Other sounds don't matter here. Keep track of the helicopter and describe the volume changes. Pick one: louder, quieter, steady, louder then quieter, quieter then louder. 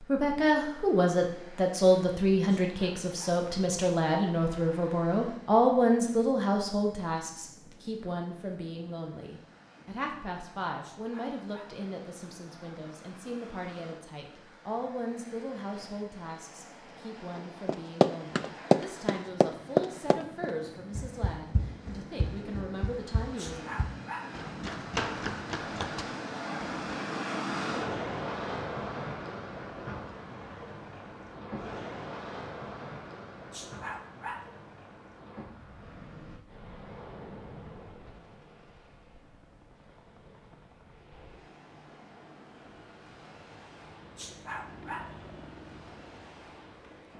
louder.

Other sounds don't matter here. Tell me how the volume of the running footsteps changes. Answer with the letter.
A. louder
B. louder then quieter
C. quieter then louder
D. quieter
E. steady
C.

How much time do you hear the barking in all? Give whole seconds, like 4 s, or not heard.
5 s.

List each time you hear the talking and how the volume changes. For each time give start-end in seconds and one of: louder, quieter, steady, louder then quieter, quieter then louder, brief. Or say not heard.
0.0-23.6 quieter.